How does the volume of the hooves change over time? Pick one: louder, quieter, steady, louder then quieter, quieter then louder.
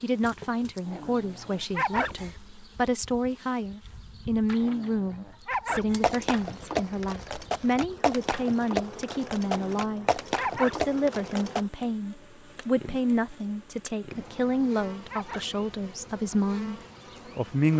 steady.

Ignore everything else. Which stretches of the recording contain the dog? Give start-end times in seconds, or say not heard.
0.8-2.4, 4.5-6.0, 9.5-10.9, 14.2-15.6.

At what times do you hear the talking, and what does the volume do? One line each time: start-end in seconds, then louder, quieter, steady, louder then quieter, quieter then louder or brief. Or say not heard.
0.0-17.7 steady.